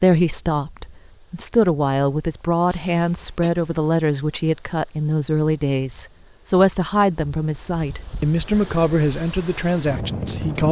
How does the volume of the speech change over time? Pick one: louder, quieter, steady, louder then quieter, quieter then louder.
steady.